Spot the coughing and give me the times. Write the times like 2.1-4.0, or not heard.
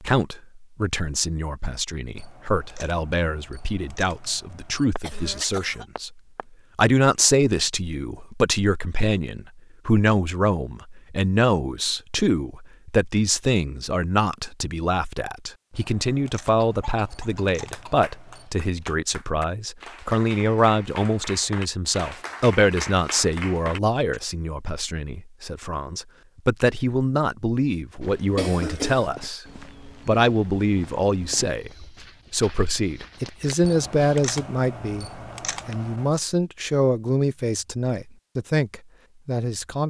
5.0-6.5, 16.6-18.6, 28.4-29.1.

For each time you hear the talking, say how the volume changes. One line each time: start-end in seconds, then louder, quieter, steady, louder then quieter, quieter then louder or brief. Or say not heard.
0.0-39.8 steady.